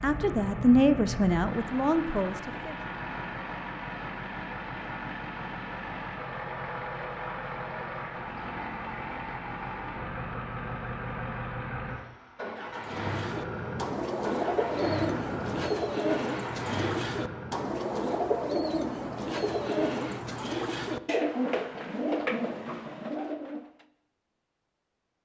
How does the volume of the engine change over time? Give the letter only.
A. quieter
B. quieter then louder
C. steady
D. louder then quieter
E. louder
C.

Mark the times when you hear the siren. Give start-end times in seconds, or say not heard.
not heard.